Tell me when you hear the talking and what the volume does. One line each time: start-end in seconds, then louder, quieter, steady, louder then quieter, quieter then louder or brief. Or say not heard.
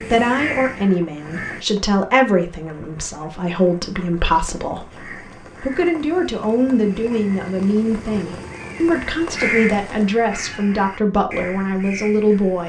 0.0-12.6 steady.